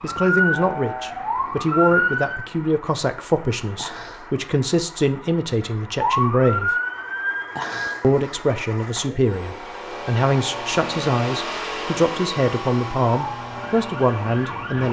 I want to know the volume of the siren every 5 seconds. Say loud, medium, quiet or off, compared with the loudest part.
loud, loud, medium.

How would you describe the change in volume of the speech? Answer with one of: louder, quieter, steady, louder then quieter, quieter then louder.
steady.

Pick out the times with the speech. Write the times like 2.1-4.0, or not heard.
0.0-6.7, 8.0-14.8.